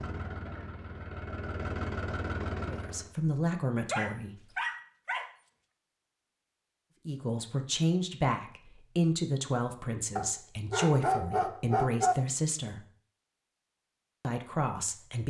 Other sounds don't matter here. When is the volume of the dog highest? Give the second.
12 s.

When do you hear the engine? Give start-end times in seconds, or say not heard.
0.0-3.1.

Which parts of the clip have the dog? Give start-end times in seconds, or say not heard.
3.9-5.3, 10.2-12.2.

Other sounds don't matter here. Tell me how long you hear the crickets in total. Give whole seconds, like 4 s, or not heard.
not heard.